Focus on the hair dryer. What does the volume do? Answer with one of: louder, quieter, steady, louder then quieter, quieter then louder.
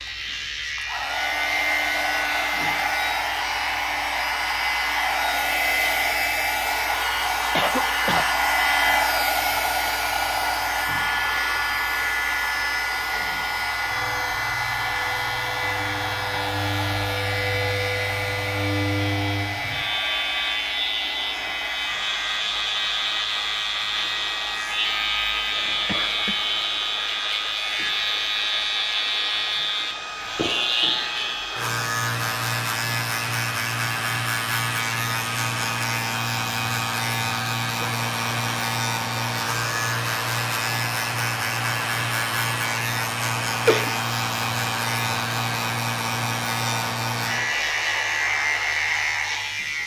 quieter.